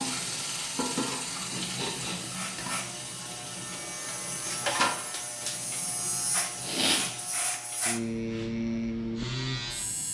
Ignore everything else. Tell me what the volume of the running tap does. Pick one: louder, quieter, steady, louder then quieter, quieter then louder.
quieter.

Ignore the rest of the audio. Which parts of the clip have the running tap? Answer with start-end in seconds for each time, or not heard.
0.0-7.6.